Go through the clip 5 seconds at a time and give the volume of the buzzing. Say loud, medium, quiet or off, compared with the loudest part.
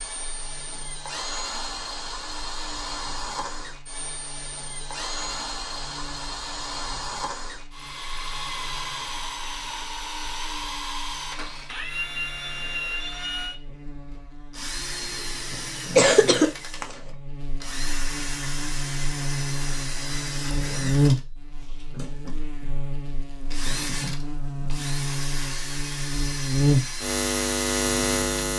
quiet, quiet, quiet, medium, loud, loud.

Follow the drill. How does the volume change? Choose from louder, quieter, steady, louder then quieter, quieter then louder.
steady.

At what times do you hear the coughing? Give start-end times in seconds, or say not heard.
15.5-16.9.